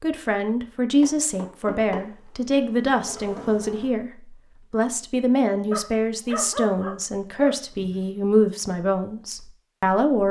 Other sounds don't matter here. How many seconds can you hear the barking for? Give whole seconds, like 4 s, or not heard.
2 s.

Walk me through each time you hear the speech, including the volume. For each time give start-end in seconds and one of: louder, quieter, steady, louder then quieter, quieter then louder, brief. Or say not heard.
0.0-10.2 steady.